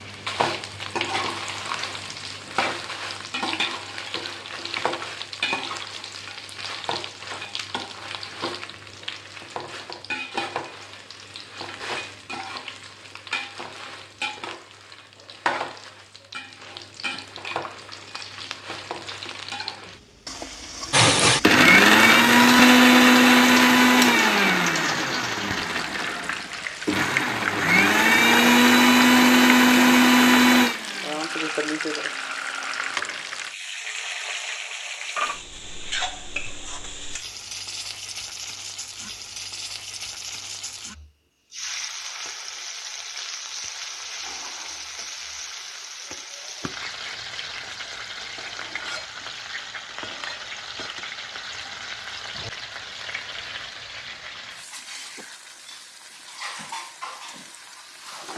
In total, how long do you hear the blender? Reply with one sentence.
You can hear the blender for 12 seconds altogether.